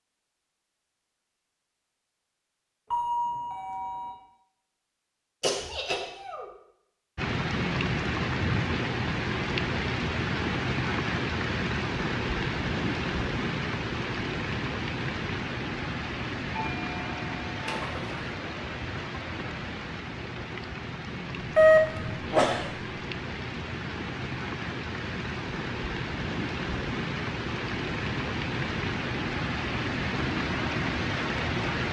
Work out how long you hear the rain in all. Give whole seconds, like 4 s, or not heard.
25 s.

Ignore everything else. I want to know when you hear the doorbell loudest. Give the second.
22 s.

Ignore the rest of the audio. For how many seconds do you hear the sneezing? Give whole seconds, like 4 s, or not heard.
2 s.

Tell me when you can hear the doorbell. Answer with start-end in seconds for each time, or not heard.
2.9-4.1, 16.6-17.7, 21.6-22.0.